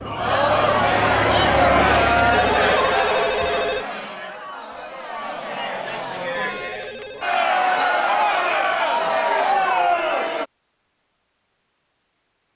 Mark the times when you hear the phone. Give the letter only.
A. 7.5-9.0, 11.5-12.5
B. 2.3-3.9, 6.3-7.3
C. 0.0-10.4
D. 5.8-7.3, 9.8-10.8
B.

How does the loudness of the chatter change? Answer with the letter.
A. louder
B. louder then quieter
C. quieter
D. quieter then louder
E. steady
D.